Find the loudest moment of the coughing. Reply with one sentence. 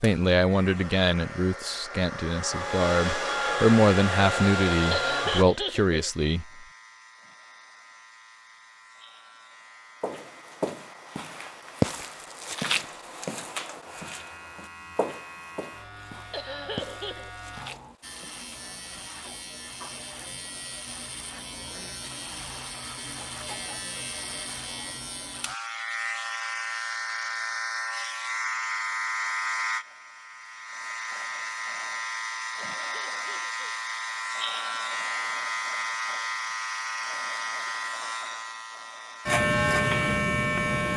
The loudest moment of the coughing is at 5 seconds.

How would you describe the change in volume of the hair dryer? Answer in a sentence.
The loudness of the hair dryer goes up.